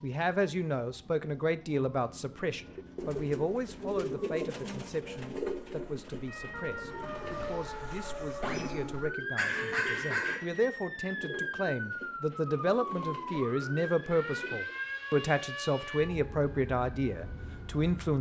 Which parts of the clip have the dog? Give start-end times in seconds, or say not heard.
8.4-10.4.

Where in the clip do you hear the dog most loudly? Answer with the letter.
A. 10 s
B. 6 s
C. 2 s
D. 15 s
A.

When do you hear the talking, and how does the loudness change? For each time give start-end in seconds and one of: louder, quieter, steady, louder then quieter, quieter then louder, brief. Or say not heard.
0.0-18.1 quieter then louder.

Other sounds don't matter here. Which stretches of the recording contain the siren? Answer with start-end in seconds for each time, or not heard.
0.0-18.1.